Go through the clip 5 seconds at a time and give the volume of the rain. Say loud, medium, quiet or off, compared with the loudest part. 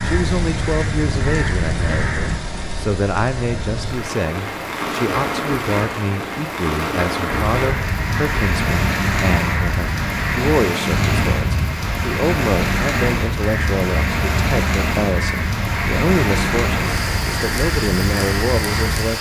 medium, loud, loud, loud.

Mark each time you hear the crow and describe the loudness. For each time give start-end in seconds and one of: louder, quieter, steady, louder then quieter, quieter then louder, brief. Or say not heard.
0.0-2.4 brief
7.2-19.1 steady.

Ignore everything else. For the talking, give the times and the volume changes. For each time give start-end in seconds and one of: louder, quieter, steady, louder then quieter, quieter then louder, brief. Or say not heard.
0.0-19.1 steady.